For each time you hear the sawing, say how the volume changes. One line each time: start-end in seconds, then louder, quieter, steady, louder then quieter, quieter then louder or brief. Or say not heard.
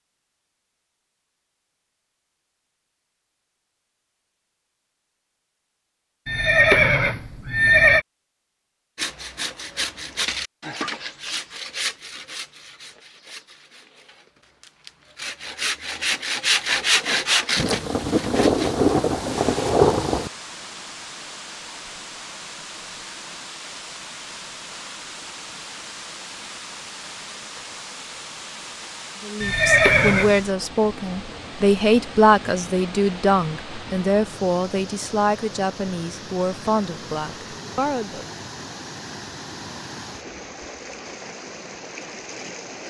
8.9-18.8 quieter then louder.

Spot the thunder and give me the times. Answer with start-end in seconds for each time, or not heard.
17.6-20.3.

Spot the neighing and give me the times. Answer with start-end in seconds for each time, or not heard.
6.2-8.1, 29.4-30.4.